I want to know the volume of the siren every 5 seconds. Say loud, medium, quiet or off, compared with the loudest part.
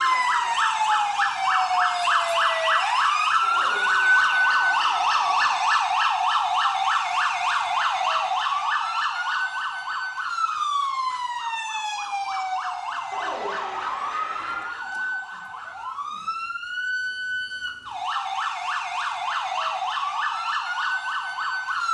loud, loud, medium, medium, medium.